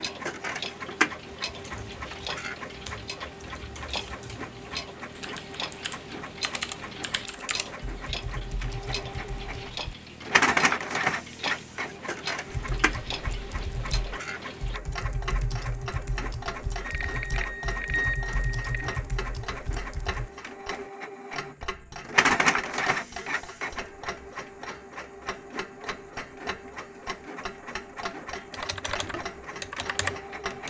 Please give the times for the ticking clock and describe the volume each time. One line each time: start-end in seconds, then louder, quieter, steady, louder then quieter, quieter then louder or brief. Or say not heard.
0.0-30.6 steady.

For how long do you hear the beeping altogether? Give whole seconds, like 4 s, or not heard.
2 s.